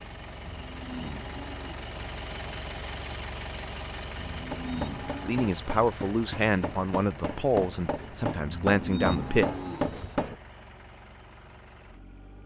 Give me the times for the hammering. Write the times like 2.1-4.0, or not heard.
4.4-10.3.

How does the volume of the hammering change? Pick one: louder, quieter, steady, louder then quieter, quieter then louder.
louder.